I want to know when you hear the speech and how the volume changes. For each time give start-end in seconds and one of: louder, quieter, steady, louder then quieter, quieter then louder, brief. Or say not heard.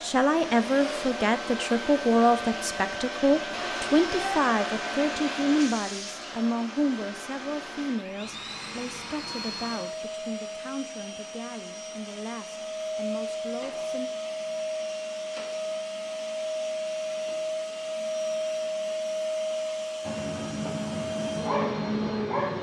0.0-14.1 quieter.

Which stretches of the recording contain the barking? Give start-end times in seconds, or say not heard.
20.1-22.5.